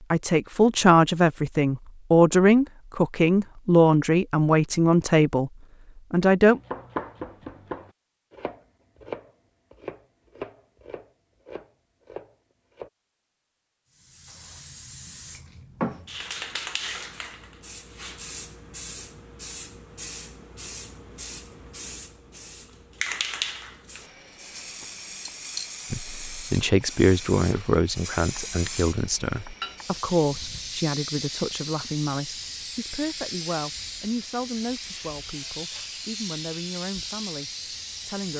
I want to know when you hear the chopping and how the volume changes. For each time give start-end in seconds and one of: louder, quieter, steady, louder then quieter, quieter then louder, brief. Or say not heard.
6.5-12.9 quieter.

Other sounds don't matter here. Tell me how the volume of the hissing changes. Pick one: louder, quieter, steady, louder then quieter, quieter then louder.
steady.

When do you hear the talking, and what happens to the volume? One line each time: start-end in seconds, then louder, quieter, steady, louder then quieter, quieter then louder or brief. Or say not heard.
0.1-5.5 steady
6.1-6.6 brief
25.9-38.3 quieter.